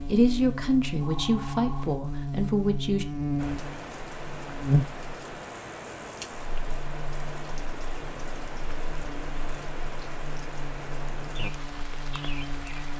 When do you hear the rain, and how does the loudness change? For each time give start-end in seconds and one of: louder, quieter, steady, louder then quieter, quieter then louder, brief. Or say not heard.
3.4-12.9 steady.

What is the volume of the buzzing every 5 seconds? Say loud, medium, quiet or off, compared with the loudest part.
loud, quiet, medium.